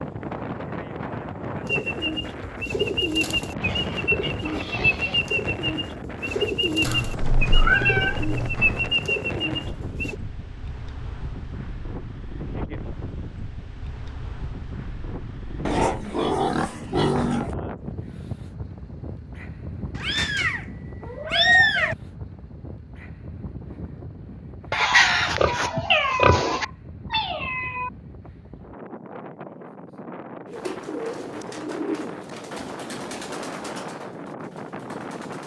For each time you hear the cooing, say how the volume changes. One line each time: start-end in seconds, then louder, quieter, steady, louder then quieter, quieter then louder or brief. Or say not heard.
1.6-10.2 steady
30.4-35.4 quieter.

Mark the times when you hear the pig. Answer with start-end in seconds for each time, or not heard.
3.5-5.2, 15.7-17.6, 24.7-26.6.